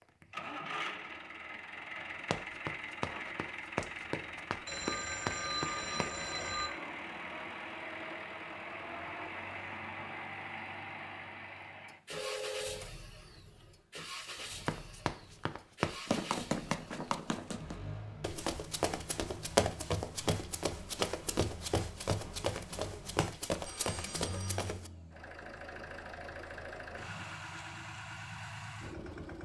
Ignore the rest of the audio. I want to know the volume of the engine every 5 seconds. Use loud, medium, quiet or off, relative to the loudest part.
loud, loud, loud, medium, medium, loud.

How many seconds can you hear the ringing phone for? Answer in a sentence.
You can hear the ringing phone for 4 seconds altogether.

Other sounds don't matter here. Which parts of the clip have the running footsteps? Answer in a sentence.
The running footsteps can be heard from 2.3 to 6.2 s and from 14.3 to 24.9 s.